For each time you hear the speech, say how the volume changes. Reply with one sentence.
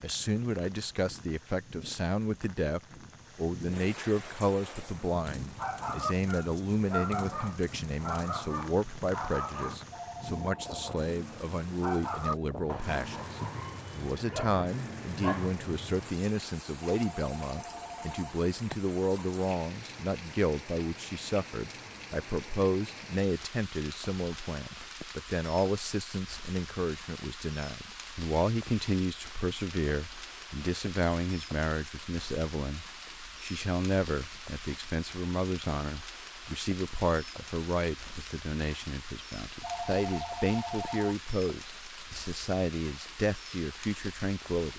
The speech can be heard from 0.0 to 44.7 s, at a steady volume.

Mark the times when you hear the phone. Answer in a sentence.
You can hear the phone from 9.9 to 10.8 s, from 16.8 to 18.4 s and from 39.6 to 41.2 s.